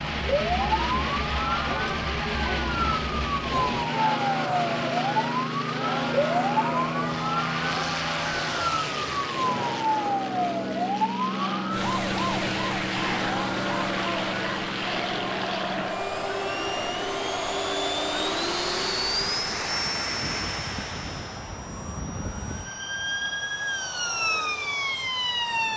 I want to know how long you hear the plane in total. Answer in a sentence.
The plane can be heard for 26 seconds in total.